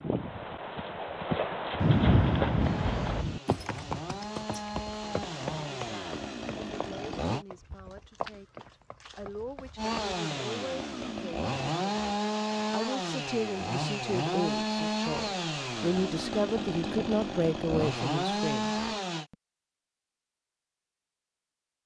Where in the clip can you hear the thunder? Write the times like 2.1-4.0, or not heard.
1.8-3.4.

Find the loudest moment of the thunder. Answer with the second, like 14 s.
2 s.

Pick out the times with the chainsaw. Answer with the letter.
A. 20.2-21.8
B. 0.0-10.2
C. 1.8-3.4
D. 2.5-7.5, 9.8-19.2
D.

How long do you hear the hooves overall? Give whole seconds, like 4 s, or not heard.
10 s.